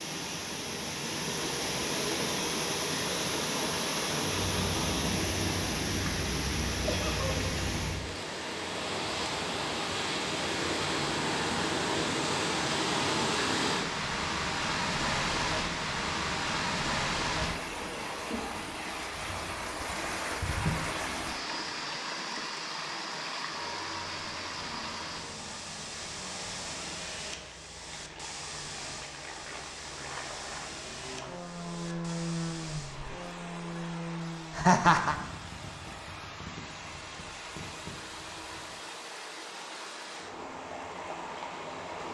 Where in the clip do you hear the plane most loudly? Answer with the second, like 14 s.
32 s.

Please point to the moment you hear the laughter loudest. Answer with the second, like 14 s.
35 s.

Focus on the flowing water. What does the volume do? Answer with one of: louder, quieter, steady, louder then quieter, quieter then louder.
quieter.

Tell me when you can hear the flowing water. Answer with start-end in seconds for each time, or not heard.
0.0-42.0.